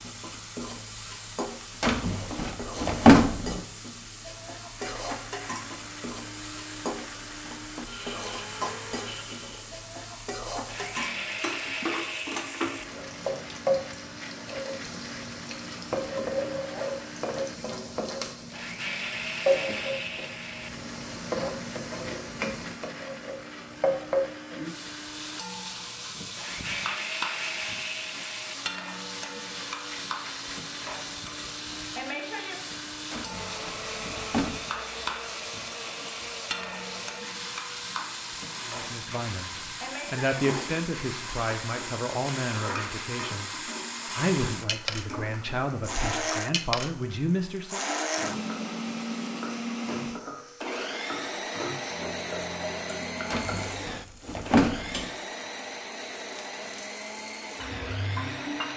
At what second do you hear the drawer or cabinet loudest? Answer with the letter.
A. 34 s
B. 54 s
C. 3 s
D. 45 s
C.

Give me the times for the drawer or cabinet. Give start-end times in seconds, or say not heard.
1.8-3.6, 33.1-34.5, 53.3-55.1.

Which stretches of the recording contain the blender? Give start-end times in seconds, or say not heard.
4.8-58.7.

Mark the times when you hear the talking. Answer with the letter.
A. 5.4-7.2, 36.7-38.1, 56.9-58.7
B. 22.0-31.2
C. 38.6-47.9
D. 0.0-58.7
C.